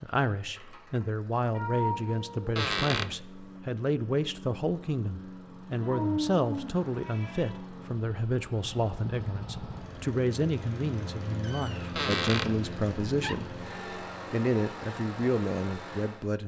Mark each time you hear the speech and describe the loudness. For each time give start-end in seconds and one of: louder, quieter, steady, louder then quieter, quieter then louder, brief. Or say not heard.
0.0-13.6 steady
14.3-16.4 brief.